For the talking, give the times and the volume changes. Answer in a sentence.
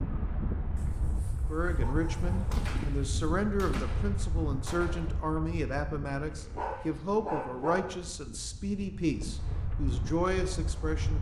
The talking can be heard from 1.5 to 11.1 s, at a steady volume.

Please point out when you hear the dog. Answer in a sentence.
The dog can be heard from 0.8 to 3.4 s and from 6.2 to 8.0 s.